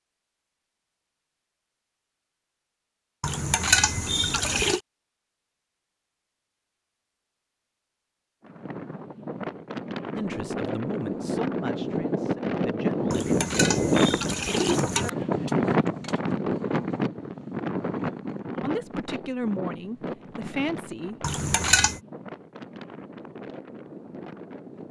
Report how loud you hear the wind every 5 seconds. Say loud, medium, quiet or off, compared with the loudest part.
off, medium, loud, loud, quiet.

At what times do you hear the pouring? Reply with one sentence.
You can hear the pouring from 3.2 to 4.8 s, from 13.1 to 15.1 s and from 21.2 to 22.0 s.